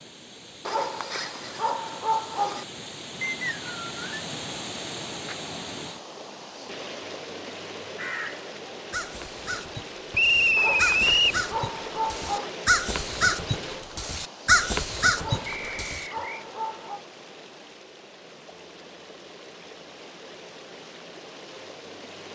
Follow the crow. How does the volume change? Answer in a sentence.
The loudness of the crow goes up.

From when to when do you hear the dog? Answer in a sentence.
The dog can be heard from 0.7 to 2.6 s, from 10.6 to 12.6 s and from 15.2 to 17.0 s.